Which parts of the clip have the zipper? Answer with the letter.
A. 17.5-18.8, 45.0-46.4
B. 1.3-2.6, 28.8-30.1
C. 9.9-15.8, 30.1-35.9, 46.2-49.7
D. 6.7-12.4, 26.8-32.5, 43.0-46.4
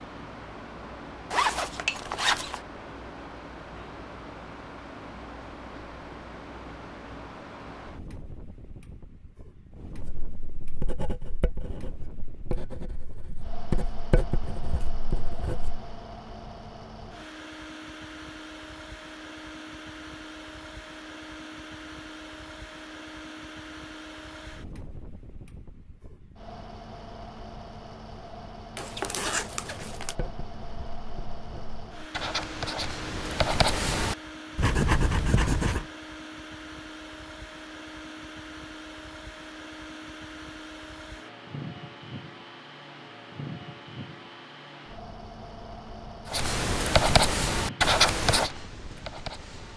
B.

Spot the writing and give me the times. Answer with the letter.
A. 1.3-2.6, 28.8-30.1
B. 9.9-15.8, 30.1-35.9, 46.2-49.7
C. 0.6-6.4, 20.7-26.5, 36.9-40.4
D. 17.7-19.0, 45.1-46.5
B.